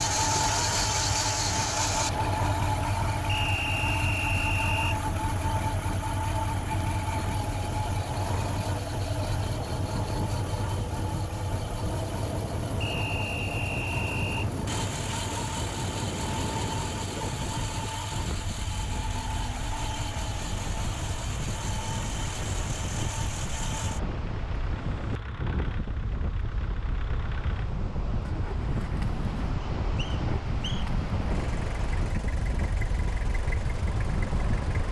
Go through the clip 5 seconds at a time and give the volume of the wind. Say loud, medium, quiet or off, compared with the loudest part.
medium, medium, loud, loud, loud, loud, loud.